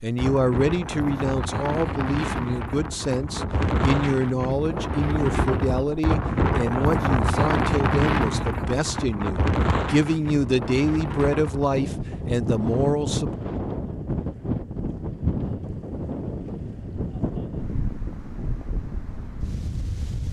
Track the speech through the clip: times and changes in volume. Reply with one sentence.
The speech can be heard from 0.0 to 13.3 s, at a steady volume.